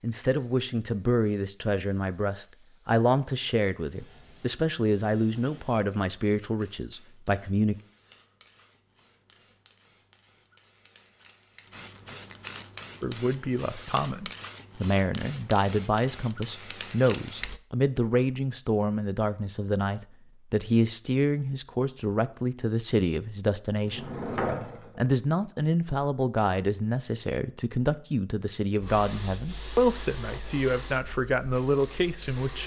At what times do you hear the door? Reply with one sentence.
You can hear the door from 23.9 to 25.0 s.